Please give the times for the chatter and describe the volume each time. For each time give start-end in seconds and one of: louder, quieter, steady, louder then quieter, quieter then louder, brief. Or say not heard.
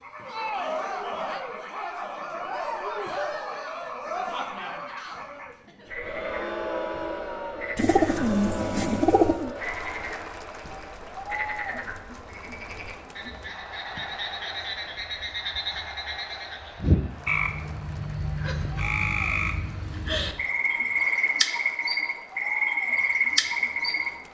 0.1-24.2 quieter.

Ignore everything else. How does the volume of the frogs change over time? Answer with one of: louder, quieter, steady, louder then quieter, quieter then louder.
louder.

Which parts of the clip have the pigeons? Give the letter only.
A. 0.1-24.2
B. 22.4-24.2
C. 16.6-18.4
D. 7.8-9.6
D.